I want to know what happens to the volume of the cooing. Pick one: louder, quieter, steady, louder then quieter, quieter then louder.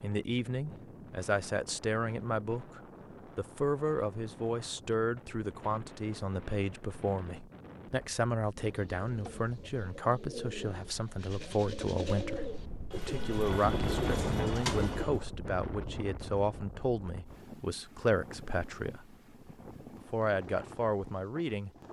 louder.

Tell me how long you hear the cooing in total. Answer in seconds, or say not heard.
7 s.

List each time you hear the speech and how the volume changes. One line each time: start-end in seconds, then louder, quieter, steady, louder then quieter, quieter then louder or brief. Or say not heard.
0.0-19.1 steady
19.9-21.7 brief.